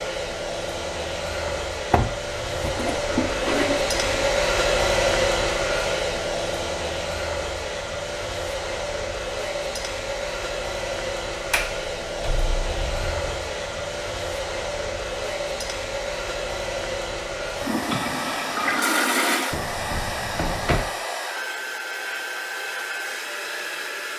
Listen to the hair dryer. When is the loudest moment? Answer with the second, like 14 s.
5 s.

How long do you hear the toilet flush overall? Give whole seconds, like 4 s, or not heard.
4 s.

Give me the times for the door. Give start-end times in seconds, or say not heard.
1.4-2.9, 11.5-13.3, 19.5-20.9.